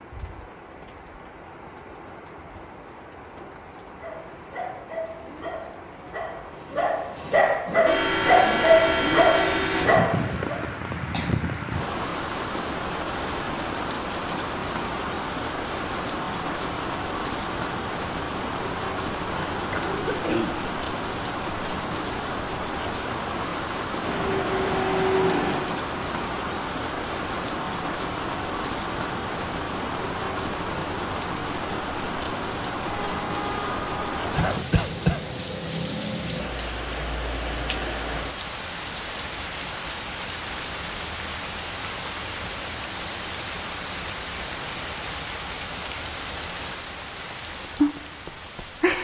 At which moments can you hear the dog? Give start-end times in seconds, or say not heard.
4.0-10.6.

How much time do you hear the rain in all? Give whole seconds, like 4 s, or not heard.
49 s.